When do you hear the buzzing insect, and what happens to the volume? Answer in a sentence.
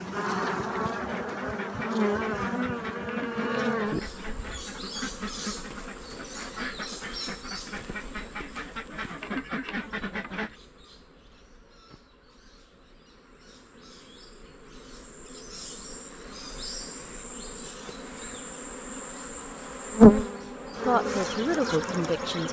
You can hear the buzzing insect from 0.0 to 22.4 s, getting quieter then louder.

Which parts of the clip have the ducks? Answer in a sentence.
The ducks can be heard from 1.0 to 10.6 s.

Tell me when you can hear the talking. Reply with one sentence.
You can hear the talking from 20.8 to 22.4 s.